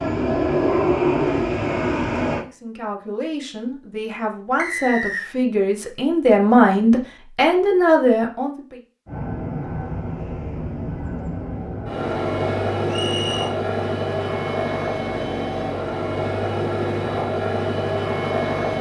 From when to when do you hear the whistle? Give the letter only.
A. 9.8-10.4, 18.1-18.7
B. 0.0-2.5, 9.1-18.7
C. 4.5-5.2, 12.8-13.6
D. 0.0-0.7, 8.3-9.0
C.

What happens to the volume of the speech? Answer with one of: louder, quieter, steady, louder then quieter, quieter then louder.
louder.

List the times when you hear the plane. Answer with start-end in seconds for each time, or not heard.
0.0-2.5, 9.1-18.7.